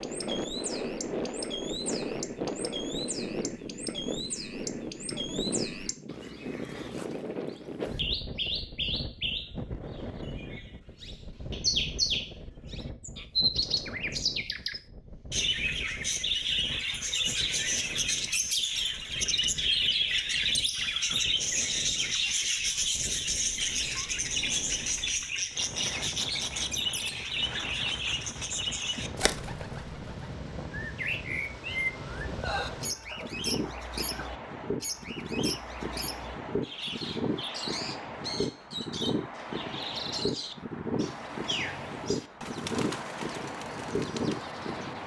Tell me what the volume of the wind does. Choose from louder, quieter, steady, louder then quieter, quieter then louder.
quieter then louder.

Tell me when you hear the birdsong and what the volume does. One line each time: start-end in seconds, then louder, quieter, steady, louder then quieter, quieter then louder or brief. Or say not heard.
0.0-45.0 louder then quieter.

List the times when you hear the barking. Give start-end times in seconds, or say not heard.
32.4-34.4.